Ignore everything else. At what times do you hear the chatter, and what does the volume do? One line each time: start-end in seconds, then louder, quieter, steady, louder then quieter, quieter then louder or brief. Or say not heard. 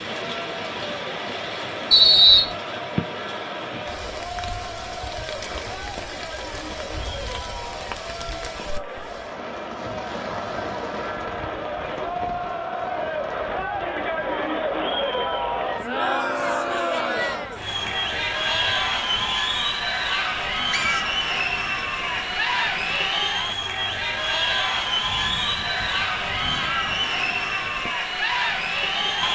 0.0-29.2 louder.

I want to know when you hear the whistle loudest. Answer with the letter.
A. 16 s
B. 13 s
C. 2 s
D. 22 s
C.